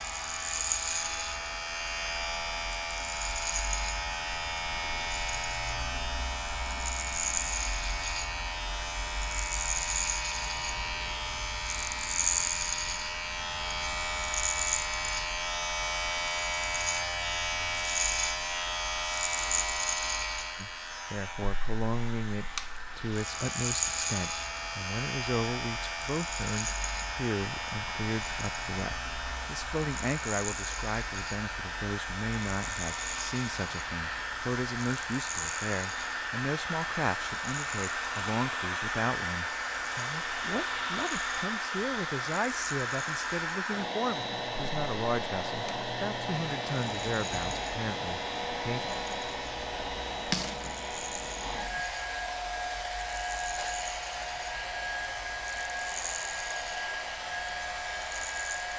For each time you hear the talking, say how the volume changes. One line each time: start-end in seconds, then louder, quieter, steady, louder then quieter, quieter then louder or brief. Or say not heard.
20.6-48.9 steady.